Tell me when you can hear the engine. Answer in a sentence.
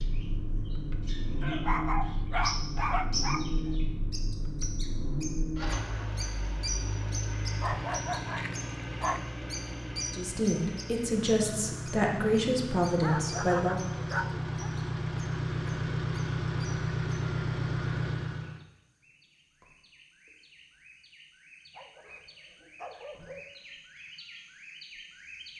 You can hear the engine from 0.0 to 18.6 s.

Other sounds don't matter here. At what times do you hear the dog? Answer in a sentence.
The dog can be heard from 1.4 to 3.5 s, from 7.6 to 9.2 s, from 13.0 to 14.7 s and from 21.8 to 23.4 s.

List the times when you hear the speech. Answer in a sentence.
You can hear the speech from 10.1 to 13.8 s.